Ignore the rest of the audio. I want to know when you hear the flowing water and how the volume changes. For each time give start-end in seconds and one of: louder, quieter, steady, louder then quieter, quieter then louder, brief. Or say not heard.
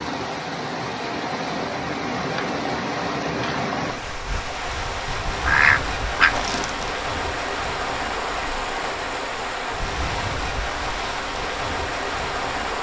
0.0-12.7 steady.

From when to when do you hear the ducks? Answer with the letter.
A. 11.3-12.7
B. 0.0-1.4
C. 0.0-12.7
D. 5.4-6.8
D.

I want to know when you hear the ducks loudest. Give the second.
6 s.